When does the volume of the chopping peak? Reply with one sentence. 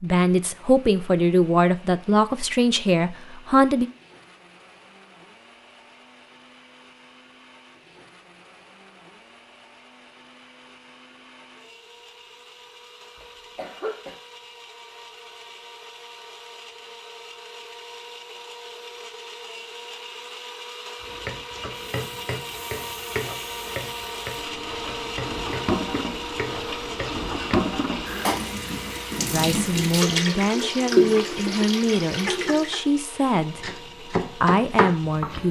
The loudest moment of the chopping is at 35 seconds.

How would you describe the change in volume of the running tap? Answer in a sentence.
The loudness of the running tap goes up.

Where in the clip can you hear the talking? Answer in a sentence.
You can hear the talking from 0.0 to 3.9 s and from 29.3 to 35.4 s.